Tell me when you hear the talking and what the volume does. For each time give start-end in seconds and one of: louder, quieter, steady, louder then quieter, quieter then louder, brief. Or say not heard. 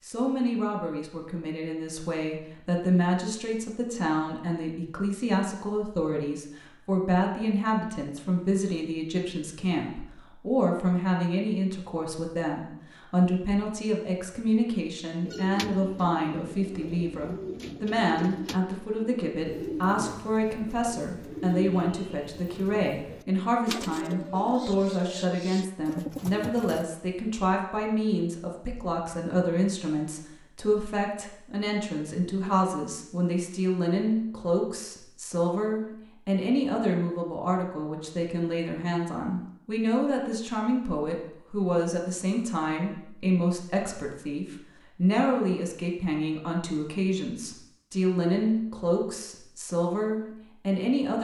0.0-51.1 steady.